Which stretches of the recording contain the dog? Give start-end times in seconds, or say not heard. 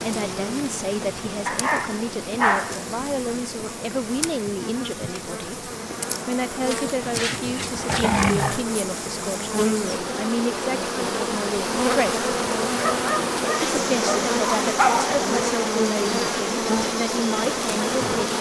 1.4-2.9, 6.7-8.7, 12.8-15.3.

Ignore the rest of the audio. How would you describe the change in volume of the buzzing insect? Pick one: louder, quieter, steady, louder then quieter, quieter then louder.
louder.